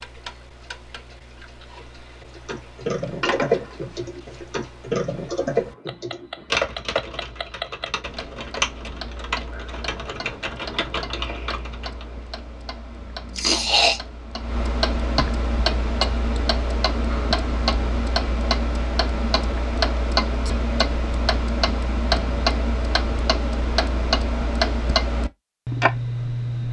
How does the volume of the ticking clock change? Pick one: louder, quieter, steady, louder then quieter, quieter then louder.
louder.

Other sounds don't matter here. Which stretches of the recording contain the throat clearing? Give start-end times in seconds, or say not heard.
13.3-14.0.